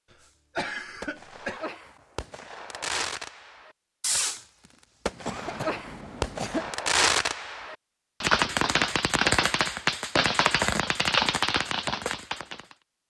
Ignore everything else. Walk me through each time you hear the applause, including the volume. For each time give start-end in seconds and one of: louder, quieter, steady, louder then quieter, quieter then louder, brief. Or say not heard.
not heard.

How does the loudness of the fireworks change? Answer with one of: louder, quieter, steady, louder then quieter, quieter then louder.
louder.